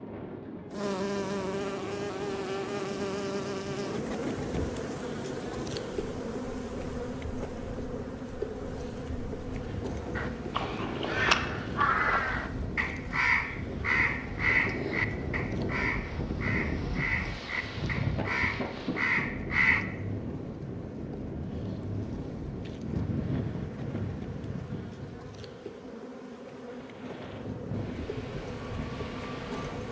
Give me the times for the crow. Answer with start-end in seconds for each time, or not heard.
10.2-19.9.